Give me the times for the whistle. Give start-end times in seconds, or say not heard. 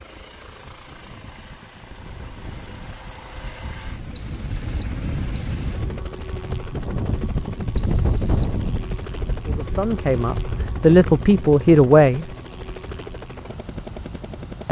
4.2-5.8, 7.8-8.6.